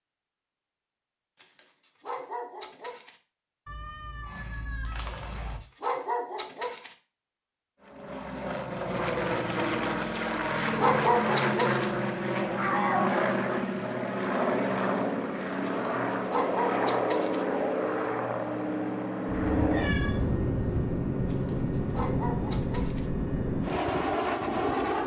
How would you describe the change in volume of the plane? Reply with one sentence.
The loudness of the plane stays about the same.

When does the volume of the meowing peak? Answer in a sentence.
The volume of the meowing peaks at 13 seconds.